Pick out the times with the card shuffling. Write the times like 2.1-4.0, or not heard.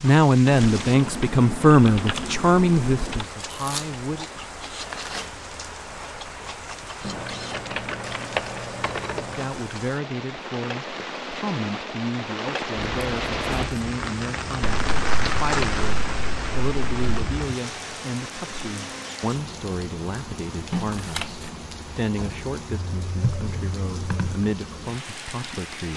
3.4-4.0, 4.8-5.4, 12.8-13.7, 20.7-21.5.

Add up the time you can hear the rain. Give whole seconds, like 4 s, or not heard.
26 s.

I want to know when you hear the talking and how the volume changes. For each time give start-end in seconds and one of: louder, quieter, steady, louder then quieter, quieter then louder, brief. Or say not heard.
0.0-4.3 quieter
9.2-25.9 steady.